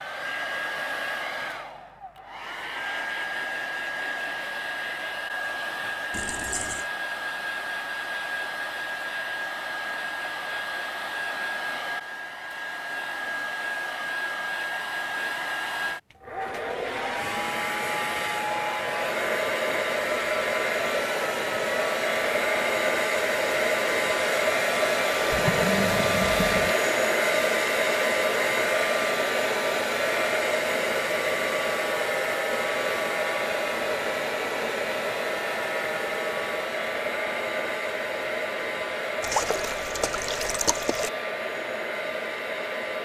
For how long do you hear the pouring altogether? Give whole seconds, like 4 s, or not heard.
4 s.